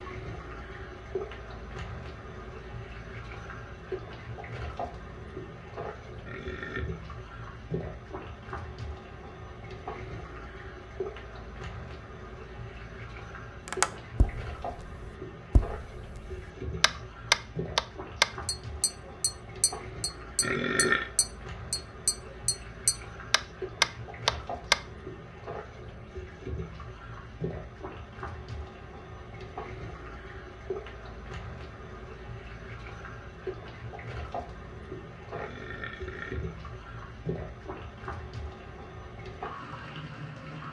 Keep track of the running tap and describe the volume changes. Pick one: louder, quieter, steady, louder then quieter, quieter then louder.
steady.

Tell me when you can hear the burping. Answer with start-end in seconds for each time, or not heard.
6.2-6.9, 20.4-21.1, 35.3-36.5.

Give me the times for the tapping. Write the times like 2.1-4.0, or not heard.
13.7-24.8.